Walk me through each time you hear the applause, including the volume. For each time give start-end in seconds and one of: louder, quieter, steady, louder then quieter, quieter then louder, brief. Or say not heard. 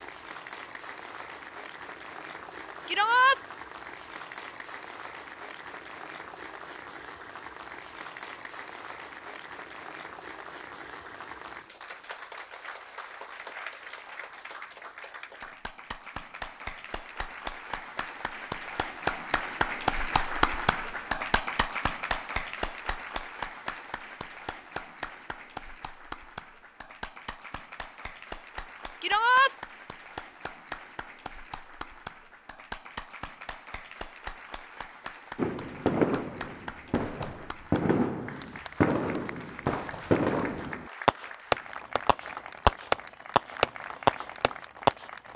0.0-45.3 louder then quieter.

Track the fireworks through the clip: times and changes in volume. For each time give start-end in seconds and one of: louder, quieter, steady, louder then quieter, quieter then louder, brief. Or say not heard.
35.4-45.0 louder.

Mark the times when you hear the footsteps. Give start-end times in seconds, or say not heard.
not heard.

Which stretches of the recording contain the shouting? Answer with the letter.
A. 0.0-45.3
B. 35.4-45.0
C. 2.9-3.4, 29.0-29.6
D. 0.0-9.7
C.